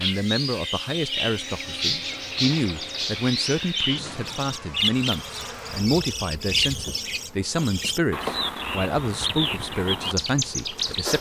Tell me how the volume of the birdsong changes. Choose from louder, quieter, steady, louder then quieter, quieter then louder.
steady.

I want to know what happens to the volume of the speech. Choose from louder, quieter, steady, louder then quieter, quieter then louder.
steady.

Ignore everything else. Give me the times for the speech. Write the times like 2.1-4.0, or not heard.
0.0-11.1.